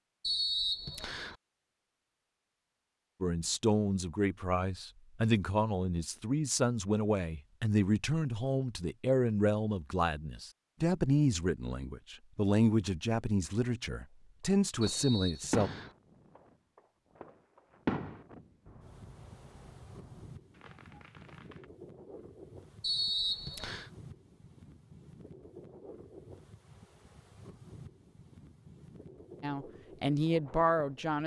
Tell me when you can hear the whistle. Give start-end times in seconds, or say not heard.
0.2-1.4, 14.8-15.9, 22.8-23.9.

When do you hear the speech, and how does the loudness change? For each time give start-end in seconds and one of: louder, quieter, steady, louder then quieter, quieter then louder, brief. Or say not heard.
3.2-15.7 steady
29.4-31.2 brief.